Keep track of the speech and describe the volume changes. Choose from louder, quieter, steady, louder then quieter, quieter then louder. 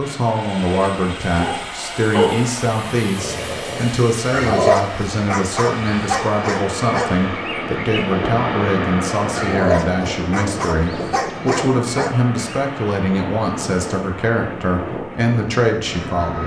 steady.